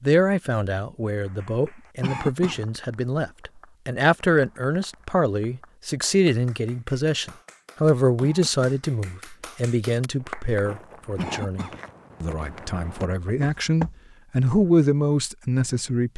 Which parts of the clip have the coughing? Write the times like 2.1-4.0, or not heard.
2.0-2.6, 8.2-8.7, 11.2-11.8.